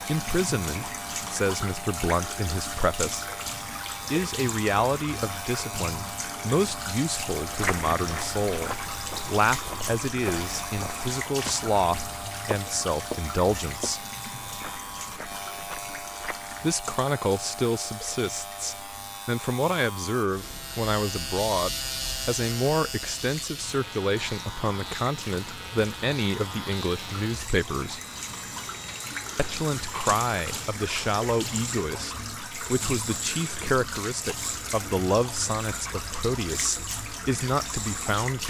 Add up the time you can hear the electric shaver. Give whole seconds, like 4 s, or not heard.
38 s.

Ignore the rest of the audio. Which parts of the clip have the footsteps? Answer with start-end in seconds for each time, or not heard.
7.5-11.6, 12.5-16.6.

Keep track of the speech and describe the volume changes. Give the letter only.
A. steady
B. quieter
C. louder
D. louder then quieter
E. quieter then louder
A.